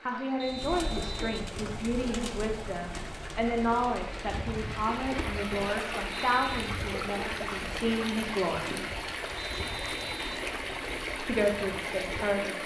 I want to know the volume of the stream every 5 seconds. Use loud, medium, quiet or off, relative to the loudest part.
medium, loud, loud.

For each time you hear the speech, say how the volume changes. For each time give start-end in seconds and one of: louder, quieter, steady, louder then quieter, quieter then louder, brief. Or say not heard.
0.1-8.8 steady
11.2-12.6 brief.